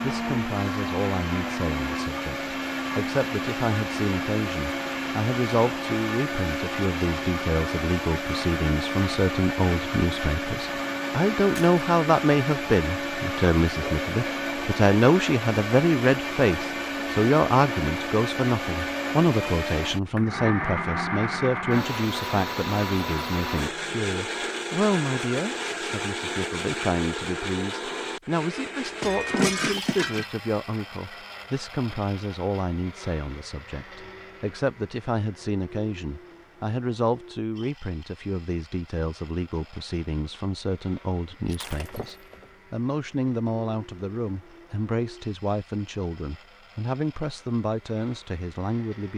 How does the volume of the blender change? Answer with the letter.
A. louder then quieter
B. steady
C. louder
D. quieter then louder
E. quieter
E.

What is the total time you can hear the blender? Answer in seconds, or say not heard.
49 s.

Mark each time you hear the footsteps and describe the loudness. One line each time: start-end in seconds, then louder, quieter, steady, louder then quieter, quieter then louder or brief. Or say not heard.
not heard.